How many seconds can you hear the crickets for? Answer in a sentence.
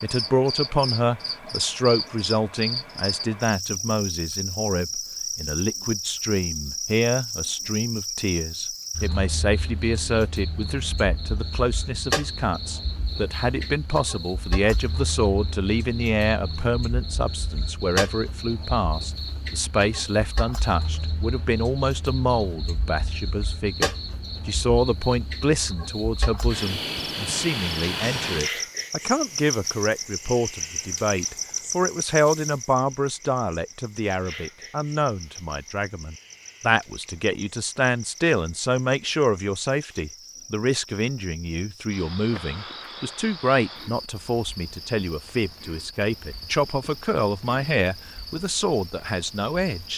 You can hear the crickets for 50 seconds altogether.